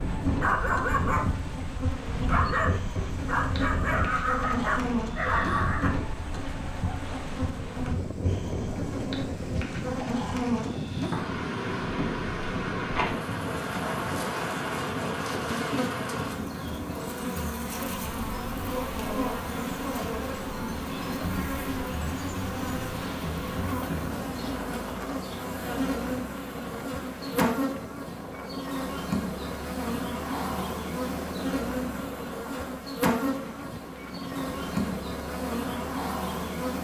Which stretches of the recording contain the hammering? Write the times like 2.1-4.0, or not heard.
not heard.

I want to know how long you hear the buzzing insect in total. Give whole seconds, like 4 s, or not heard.
37 s.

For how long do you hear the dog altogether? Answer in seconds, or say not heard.
6 s.